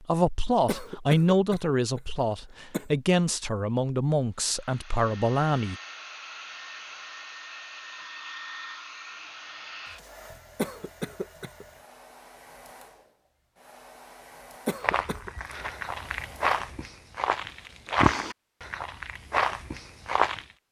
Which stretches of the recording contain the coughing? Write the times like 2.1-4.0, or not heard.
0.7-2.9, 10.6-11.7, 14.7-15.3.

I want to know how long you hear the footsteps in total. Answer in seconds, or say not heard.
6 s.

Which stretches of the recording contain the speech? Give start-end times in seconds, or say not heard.
0.0-5.8.